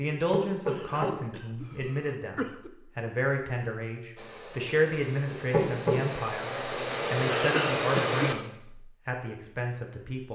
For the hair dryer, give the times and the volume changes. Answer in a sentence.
You can hear the hair dryer from 4.2 to 8.3 s, getting louder.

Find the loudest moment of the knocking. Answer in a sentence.
The loudest moment of the knocking is at 6 seconds.